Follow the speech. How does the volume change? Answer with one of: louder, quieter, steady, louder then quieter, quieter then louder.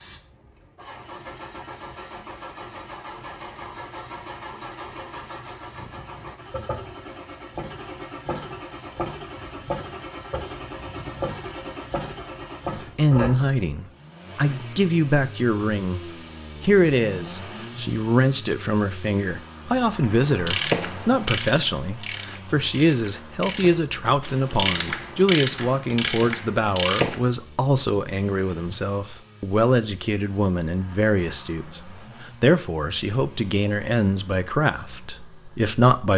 steady.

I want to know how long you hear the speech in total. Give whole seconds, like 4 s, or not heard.
23 s.